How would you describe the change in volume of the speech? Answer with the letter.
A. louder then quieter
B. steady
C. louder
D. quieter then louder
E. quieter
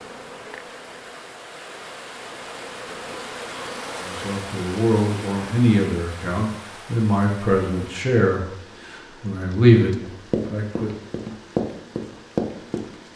C.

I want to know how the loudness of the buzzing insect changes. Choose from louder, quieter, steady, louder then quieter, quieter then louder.
quieter then louder.